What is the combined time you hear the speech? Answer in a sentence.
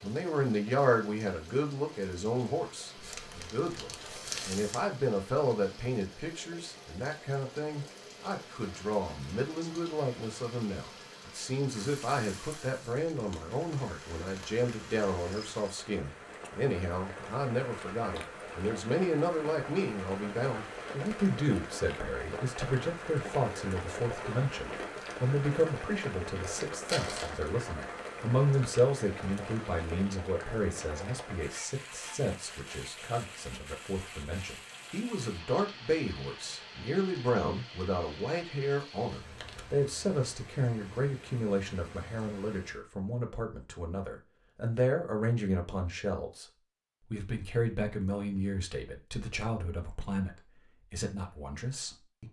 You can hear the speech for 52 seconds altogether.